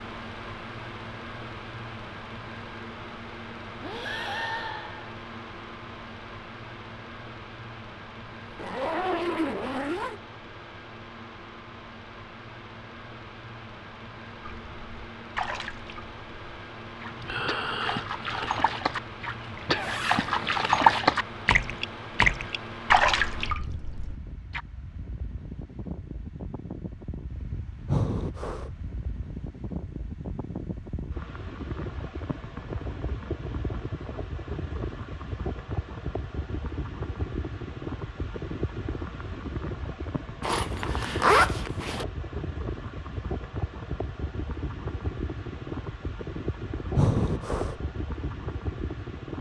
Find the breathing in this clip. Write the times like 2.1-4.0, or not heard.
3.8-5.2, 17.1-18.8, 27.9-28.7, 47.0-47.8.